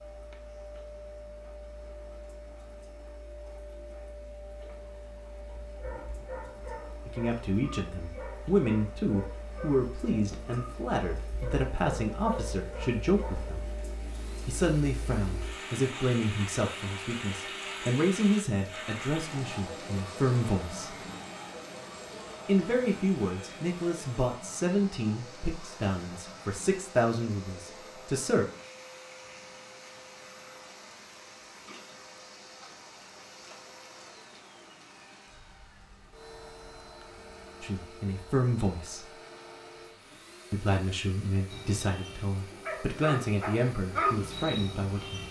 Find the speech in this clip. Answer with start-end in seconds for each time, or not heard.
7.0-13.6, 14.4-21.0, 22.4-28.4, 37.6-39.1, 40.5-45.2.